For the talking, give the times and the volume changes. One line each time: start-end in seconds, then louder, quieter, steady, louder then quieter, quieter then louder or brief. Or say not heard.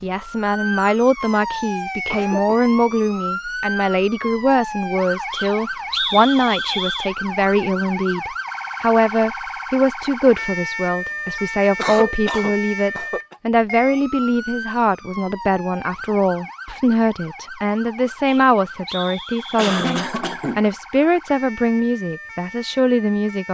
0.0-23.4 steady.